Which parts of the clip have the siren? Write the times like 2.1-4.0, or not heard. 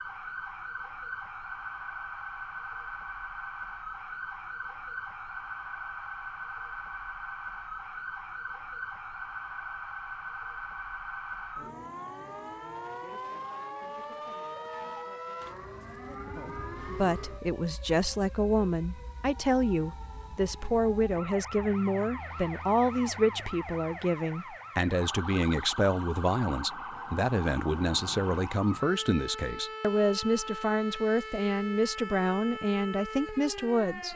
0.0-34.1.